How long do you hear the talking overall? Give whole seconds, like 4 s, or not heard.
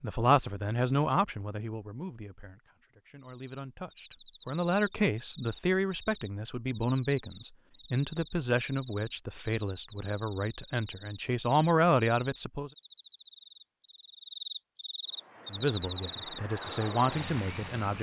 15 s.